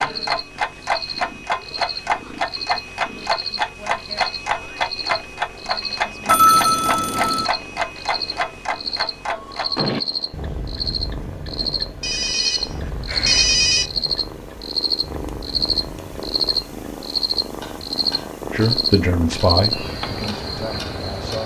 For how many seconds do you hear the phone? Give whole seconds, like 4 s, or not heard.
3 s.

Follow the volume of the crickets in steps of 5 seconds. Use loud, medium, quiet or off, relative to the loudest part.
medium, medium, loud, loud, medium.